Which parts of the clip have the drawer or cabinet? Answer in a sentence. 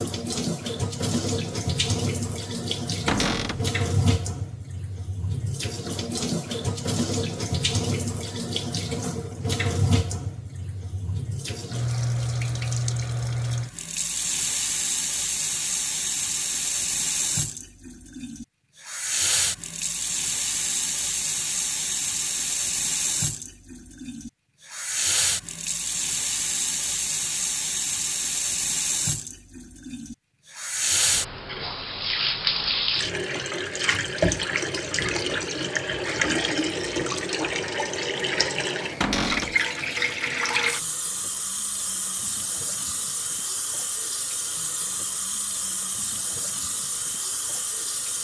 The drawer or cabinet can be heard from 3.0 to 3.6 s and from 39.0 to 39.5 s.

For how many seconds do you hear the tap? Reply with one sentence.
You can hear the tap for 48 seconds altogether.